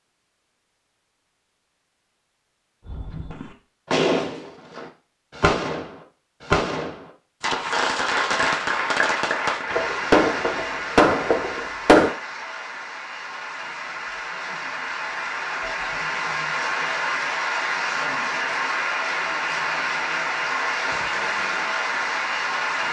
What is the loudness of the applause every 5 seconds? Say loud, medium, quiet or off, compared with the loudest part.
off, loud, medium, loud, loud.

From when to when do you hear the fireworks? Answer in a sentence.
The fireworks can be heard from 2.9 to 12.1 s.